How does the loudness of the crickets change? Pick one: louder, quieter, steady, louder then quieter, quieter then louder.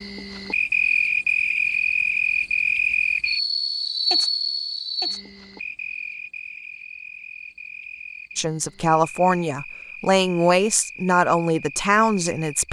quieter.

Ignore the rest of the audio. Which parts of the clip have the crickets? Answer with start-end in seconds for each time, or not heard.
0.0-12.6.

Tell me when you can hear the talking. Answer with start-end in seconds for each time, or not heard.
8.3-12.6.